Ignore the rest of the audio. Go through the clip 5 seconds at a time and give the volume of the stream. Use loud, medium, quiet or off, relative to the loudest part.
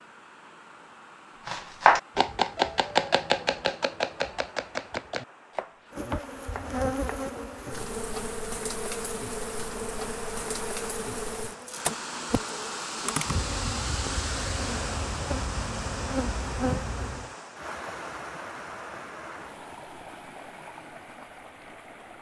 quiet, medium, loud, loud, medium.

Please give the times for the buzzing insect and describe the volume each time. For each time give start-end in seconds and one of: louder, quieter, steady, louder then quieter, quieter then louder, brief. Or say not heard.
5.9-17.4 steady.